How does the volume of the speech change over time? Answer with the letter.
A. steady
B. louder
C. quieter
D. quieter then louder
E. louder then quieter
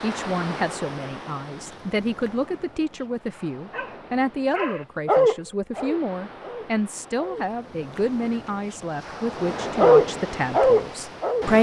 A.